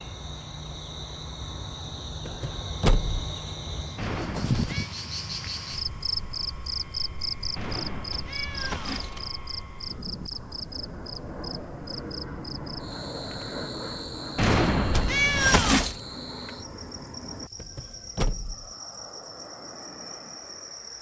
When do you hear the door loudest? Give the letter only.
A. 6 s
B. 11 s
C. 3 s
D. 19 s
C.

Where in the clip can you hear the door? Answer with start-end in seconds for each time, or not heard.
2.2-3.1, 17.6-18.7.